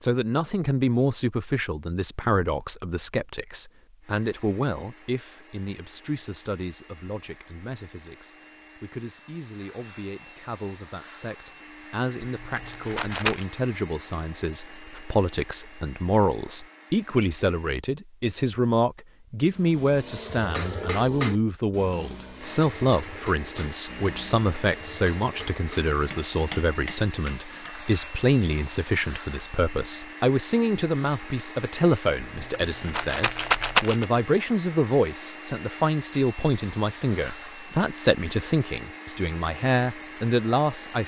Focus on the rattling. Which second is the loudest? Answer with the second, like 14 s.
34 s.